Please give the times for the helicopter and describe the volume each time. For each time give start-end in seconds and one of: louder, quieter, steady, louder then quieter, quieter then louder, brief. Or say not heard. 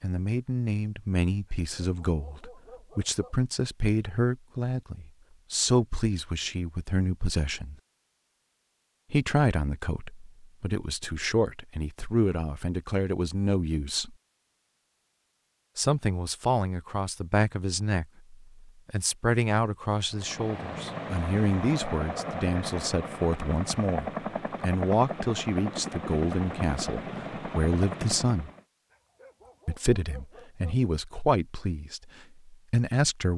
20.1-28.6 steady.